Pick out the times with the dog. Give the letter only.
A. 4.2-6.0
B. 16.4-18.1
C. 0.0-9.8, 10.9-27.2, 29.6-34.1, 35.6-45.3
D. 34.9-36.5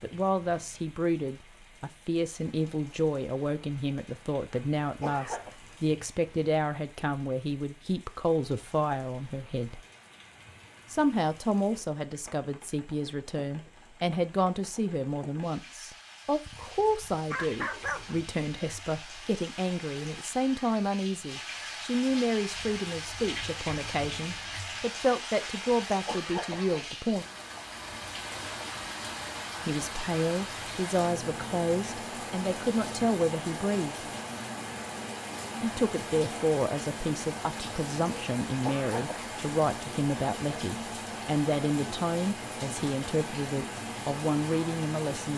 B.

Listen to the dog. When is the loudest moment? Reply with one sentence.
The loudest moment of the dog is at 18 seconds.